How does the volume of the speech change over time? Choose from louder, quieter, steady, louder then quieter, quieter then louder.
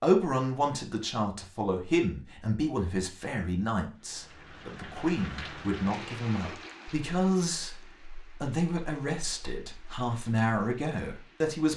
steady.